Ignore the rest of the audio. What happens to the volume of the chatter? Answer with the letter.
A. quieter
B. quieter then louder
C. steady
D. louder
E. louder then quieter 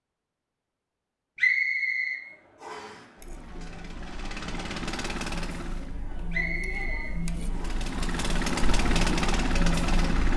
D.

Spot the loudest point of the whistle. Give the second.
2 s.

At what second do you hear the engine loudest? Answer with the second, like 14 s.
9 s.